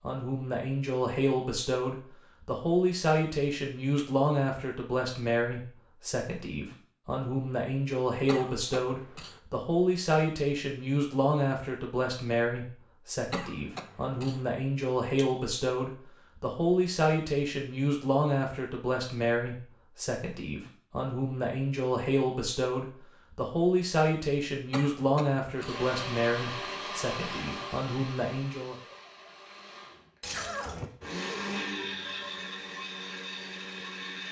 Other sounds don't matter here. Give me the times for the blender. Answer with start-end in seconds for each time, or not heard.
25.6-34.2.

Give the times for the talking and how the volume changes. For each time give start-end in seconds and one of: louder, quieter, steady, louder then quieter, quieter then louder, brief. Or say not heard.
0.0-28.8 steady.